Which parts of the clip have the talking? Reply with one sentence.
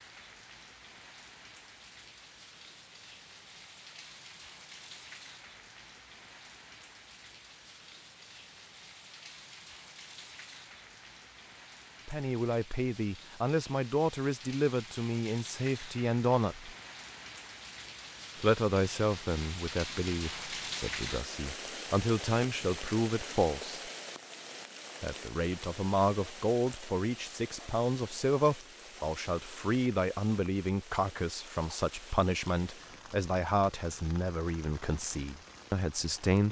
You can hear the talking from 12.1 to 16.7 s, from 18.4 to 23.8 s and from 25.0 to 36.4 s.